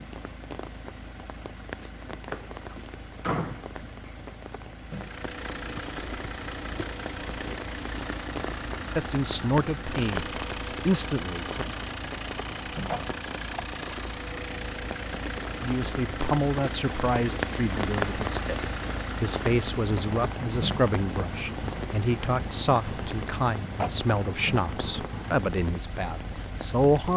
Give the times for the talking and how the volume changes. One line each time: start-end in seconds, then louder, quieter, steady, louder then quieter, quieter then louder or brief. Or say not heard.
8.9-11.7 brief
15.6-27.1 steady.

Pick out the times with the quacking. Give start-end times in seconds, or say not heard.
not heard.